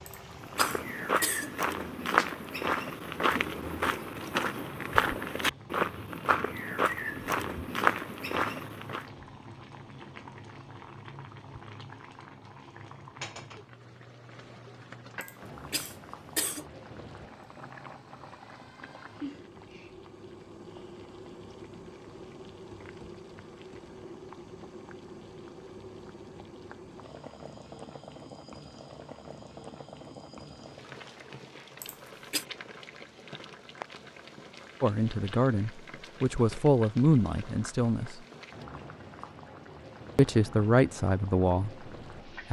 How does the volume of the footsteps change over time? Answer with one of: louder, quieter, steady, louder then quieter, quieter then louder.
steady.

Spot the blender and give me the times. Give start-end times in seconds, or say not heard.
not heard.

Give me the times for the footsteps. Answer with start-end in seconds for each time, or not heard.
0.4-9.1.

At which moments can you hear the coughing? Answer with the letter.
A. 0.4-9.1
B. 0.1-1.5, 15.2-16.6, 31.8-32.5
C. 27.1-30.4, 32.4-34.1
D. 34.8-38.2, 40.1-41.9
B.